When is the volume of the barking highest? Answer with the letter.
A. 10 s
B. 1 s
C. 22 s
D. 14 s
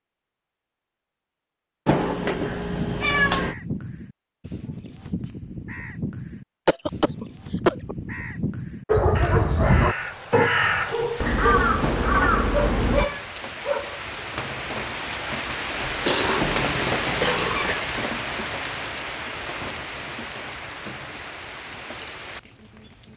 A.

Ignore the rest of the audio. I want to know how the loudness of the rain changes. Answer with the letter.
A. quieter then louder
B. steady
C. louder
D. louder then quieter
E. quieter
D.